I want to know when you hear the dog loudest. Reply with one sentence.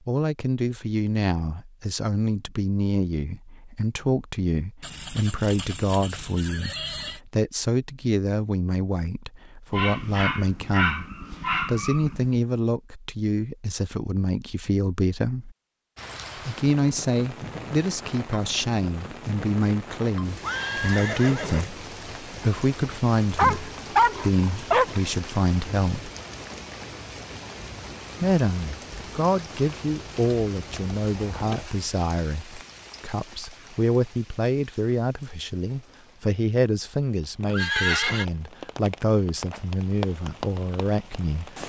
The volume of the dog peaks at 24 seconds.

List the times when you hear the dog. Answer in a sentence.
The dog can be heard from 9.7 to 12.3 s and from 23.4 to 25.0 s.